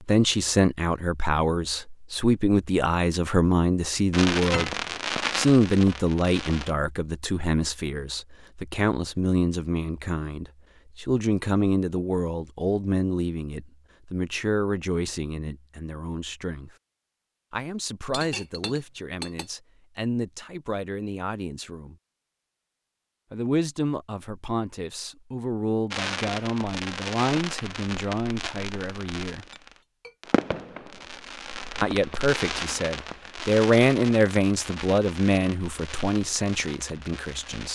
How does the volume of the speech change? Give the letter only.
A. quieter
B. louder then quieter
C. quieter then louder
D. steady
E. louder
C.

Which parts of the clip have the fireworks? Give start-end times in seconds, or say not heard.
4.1-6.8, 25.9-37.7.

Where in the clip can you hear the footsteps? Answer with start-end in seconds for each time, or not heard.
not heard.